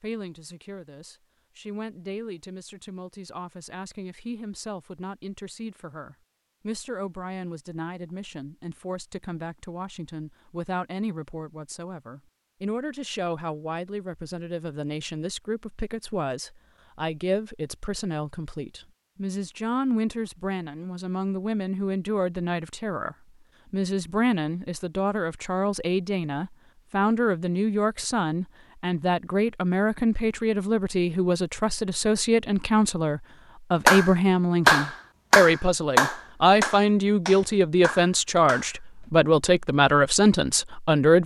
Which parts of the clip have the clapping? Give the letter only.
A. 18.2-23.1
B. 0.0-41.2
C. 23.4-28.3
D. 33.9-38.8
D.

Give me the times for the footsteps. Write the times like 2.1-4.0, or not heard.
not heard.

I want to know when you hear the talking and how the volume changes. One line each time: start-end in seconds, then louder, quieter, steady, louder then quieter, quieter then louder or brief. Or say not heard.
0.0-41.2 louder.